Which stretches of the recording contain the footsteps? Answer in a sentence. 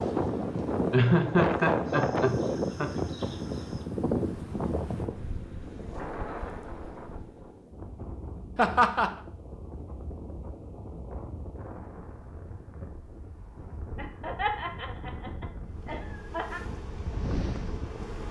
You can't hear the footsteps here.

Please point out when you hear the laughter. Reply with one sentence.
The laughter can be heard from 0.9 to 2.9 s, from 8.6 to 9.1 s and from 13.9 to 16.6 s.